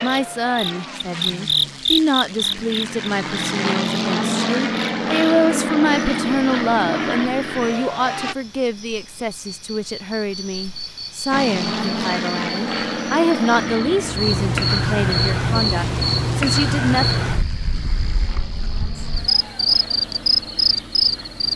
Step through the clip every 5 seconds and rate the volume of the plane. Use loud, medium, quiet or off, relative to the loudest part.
loud, loud, loud, quiet, quiet.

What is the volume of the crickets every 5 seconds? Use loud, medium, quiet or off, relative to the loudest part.
loud, quiet, medium, loud, loud.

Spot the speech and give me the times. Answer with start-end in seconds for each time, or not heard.
0.0-17.1.